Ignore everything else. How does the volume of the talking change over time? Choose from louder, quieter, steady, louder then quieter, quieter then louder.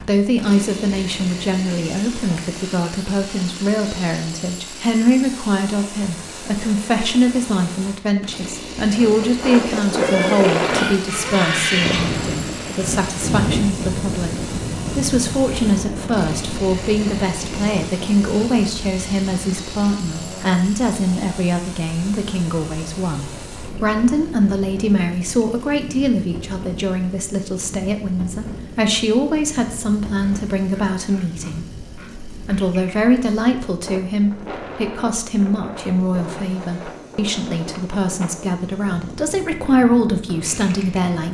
steady.